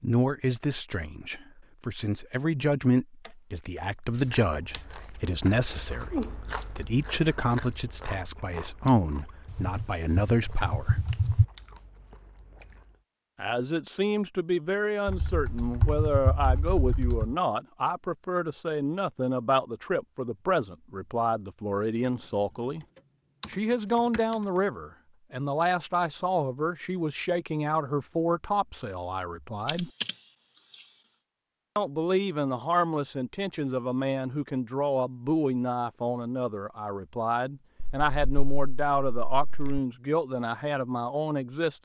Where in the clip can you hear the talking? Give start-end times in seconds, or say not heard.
0.0-11.0, 13.4-22.9, 23.4-29.9, 31.8-41.8.